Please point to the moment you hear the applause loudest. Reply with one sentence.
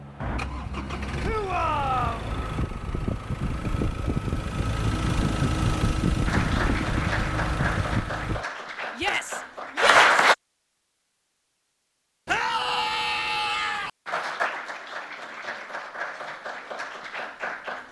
The volume of the applause peaks at 10 seconds.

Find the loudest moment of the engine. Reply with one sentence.
The volume of the engine peaks at 6 seconds.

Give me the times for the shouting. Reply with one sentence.
The shouting can be heard from 1.2 to 2.2 s, from 8.9 to 10.2 s and from 12.2 to 13.9 s.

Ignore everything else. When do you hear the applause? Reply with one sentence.
You can hear the applause from 6.2 to 10.3 s and from 14.1 to 17.8 s.